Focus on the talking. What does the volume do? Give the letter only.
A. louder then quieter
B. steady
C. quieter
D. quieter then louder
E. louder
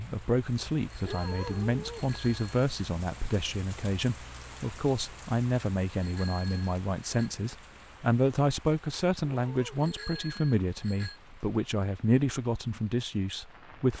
B.